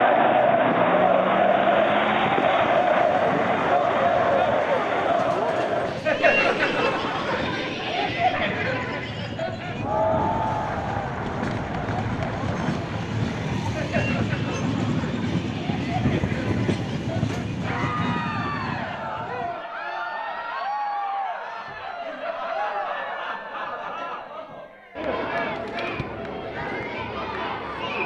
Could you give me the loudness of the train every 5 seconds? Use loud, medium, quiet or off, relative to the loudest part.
medium, medium, loud, loud, off, off.